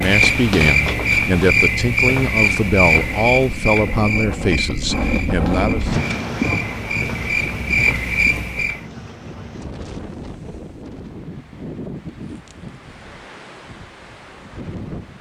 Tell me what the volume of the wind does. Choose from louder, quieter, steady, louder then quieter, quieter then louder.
louder then quieter.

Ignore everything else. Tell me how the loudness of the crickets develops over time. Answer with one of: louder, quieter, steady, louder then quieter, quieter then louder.
quieter then louder.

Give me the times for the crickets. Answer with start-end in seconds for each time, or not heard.
0.0-8.8.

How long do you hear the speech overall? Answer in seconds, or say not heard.
6 s.